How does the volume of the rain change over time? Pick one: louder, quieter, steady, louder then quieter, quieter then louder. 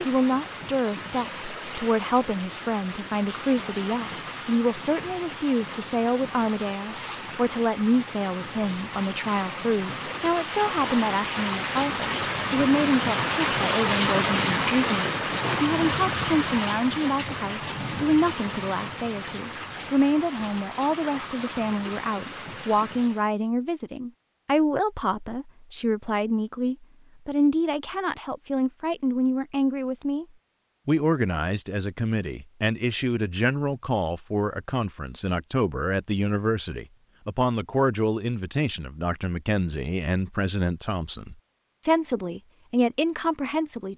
louder then quieter.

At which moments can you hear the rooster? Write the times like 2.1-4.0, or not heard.
not heard.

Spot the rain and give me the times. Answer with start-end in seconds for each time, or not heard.
0.0-23.3.